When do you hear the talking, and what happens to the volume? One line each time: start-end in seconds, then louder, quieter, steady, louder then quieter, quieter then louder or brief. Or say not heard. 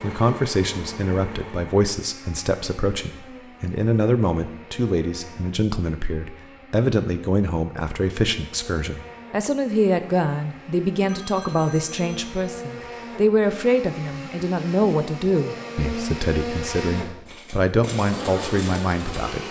0.0-19.4 steady.